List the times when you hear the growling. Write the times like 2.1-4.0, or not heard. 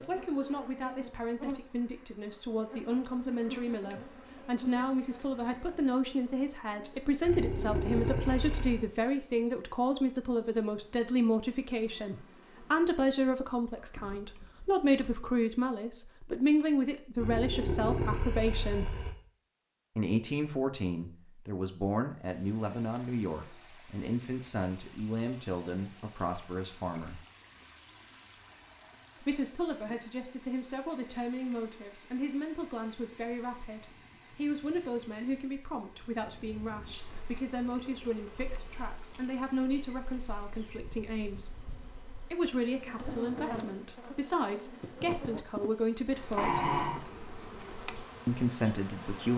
7.2-8.9, 17.1-19.1, 46.4-47.0.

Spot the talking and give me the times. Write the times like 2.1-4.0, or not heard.
0.1-18.9, 19.9-27.2, 29.2-41.5, 42.3-46.7, 48.2-49.3.